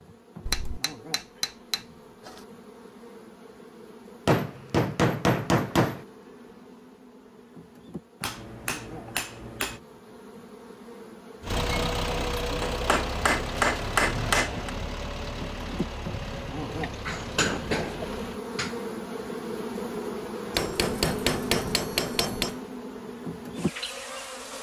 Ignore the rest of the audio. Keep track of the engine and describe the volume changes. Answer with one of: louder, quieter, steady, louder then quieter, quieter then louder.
quieter.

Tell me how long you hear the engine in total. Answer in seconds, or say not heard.
7 s.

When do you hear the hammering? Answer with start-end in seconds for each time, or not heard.
0.5-2.4, 4.2-6.0, 8.2-9.8, 12.6-14.7, 16.8-18.8, 20.6-22.6.